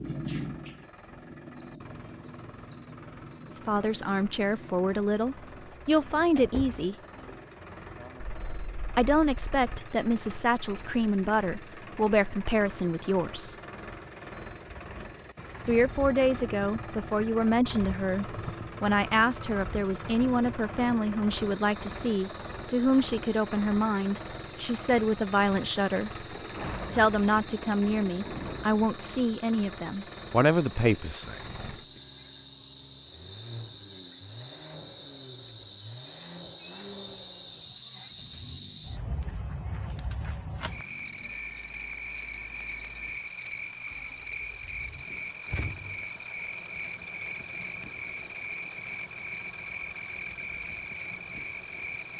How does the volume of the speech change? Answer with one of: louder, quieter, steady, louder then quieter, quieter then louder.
steady.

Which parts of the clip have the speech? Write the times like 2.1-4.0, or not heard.
3.5-7.0, 8.9-13.6, 15.7-26.2, 26.9-31.5.